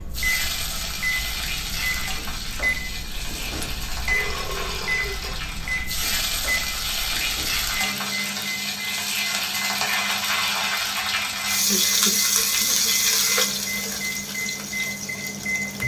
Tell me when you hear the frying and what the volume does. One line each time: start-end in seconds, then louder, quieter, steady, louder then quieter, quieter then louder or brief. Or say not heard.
0.1-15.8 louder.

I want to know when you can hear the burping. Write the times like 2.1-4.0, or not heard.
4.1-5.4.